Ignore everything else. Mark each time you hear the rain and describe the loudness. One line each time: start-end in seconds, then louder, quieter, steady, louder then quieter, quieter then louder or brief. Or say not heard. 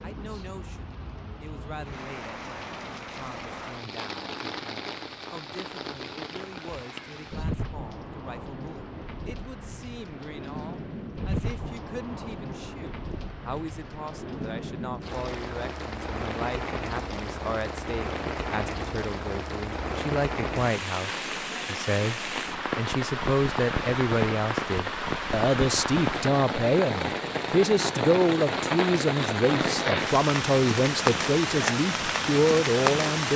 0.0-33.3 louder.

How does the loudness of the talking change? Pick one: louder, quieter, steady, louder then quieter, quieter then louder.
louder.